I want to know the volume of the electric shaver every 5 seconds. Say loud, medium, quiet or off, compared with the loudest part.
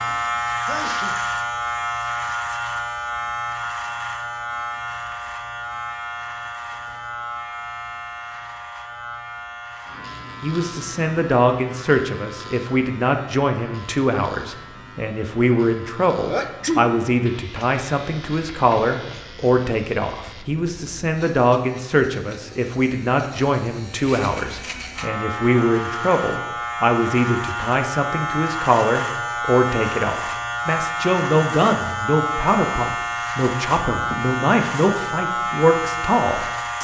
loud, medium, quiet, quiet, quiet, loud, loud, loud.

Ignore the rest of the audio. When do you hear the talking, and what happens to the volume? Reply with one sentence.
The talking can be heard from 10.4 to 36.7 s, at a steady volume.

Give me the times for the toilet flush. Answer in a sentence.
You can't hear the toilet flush here.